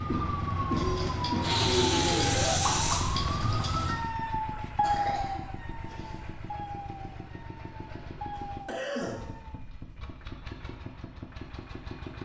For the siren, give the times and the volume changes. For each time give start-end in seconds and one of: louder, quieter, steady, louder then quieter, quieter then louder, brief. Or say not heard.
0.0-9.6 quieter.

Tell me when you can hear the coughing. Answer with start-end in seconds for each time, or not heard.
0.1-1.5, 4.5-6.2, 8.3-9.2.